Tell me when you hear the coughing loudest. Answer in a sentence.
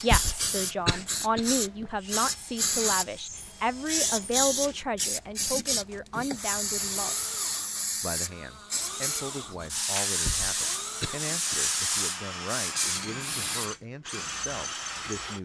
The loudest moment of the coughing is at 1 second.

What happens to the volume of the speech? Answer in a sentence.
The volume of the speech goes down.